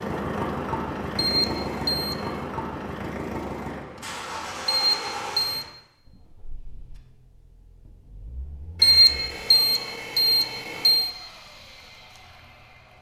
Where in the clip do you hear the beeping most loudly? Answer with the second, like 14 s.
9 s.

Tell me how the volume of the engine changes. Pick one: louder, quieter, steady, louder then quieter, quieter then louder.
quieter.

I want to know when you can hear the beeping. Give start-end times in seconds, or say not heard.
1.1-2.4, 4.7-5.7, 8.8-11.1.